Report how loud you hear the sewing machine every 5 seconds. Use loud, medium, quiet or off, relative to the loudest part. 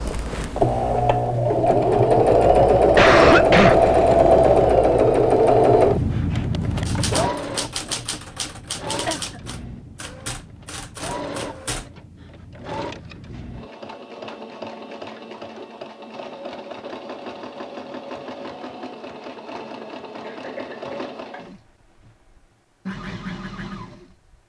loud, medium, quiet, quiet, quiet.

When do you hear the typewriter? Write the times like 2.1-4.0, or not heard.
6.8-11.9.